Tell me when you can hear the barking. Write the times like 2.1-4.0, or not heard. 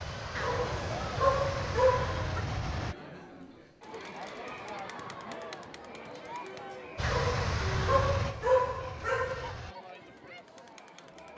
0.3-2.5, 7.0-9.6.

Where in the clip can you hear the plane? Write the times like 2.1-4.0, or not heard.
0.0-3.0, 7.0-9.8.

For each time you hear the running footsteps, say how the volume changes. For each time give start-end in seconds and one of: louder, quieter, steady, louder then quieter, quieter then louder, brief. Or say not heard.
not heard.